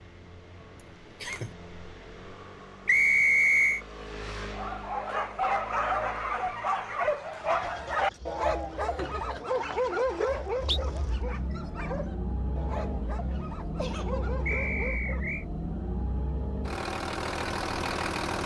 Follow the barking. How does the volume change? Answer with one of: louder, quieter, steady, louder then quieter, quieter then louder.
quieter.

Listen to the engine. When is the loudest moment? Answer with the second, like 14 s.
18 s.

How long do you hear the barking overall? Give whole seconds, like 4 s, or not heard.
11 s.